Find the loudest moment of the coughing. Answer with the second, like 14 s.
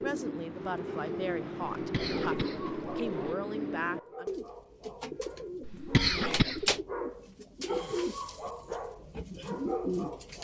6 s.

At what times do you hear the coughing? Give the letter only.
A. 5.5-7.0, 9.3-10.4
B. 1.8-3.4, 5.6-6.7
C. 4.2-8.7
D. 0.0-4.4
B.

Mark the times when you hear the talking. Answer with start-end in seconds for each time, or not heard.
0.0-4.4.